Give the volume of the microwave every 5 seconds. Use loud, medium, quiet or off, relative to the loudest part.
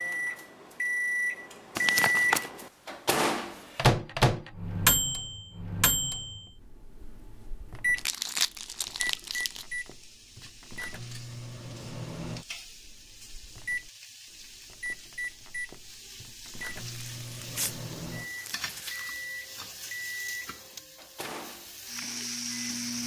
loud, medium, quiet, quiet, quiet.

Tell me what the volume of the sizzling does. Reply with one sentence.
The volume of the sizzling goes up.